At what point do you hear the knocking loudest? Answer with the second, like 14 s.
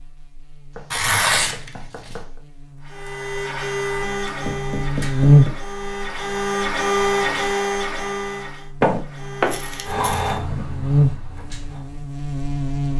9 s.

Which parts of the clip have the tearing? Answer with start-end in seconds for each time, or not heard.
0.9-2.1, 9.4-10.3.